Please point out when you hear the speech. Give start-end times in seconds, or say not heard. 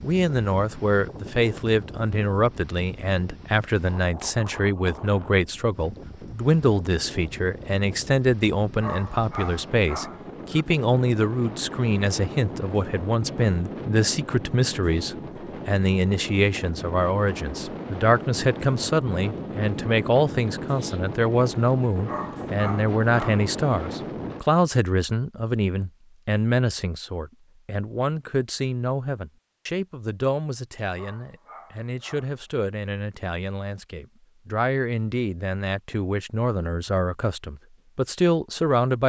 0.0-39.0.